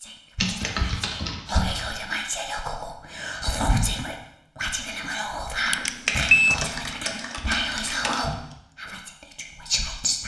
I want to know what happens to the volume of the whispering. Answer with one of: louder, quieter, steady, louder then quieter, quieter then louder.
steady.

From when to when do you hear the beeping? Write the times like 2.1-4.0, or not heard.
5.7-6.5.